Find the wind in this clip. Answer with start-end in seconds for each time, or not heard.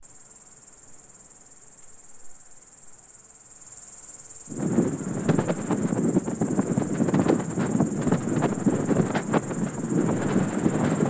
4.5-11.0.